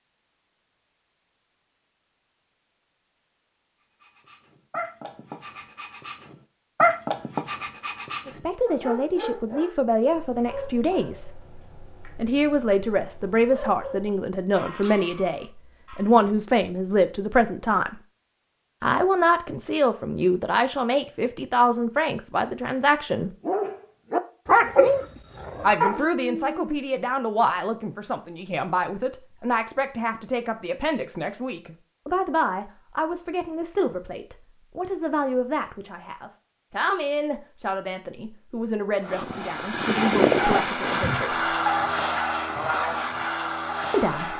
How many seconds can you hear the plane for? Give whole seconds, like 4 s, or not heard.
5 s.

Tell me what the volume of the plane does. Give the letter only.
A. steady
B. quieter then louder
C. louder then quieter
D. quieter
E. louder
D.